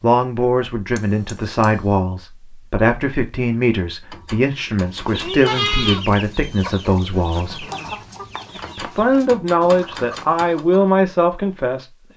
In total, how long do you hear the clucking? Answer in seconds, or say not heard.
6 s.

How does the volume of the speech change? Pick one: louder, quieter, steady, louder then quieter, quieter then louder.
steady.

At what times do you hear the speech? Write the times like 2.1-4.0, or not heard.
0.0-7.7, 8.8-12.1.